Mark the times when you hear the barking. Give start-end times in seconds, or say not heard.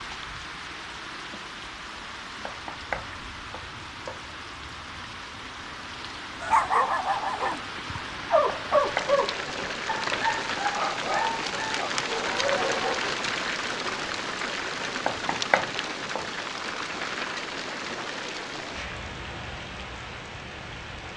6.4-13.2.